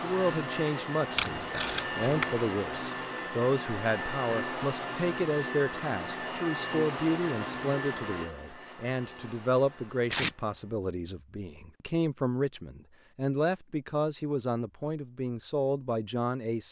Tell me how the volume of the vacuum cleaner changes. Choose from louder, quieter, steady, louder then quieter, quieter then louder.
quieter.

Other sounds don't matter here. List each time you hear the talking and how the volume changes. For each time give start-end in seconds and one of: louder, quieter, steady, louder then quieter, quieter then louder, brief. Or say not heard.
0.0-16.6 steady.